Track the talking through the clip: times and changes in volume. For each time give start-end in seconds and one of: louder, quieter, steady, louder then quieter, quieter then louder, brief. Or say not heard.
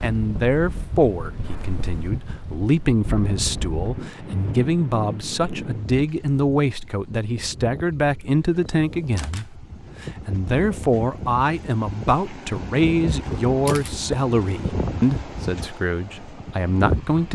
0.0-17.3 steady.